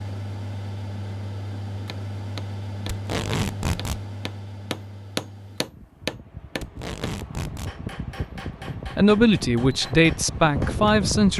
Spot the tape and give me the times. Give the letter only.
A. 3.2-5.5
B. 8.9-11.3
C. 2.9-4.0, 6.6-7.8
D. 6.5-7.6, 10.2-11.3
C.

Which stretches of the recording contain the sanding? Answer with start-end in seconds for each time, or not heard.
not heard.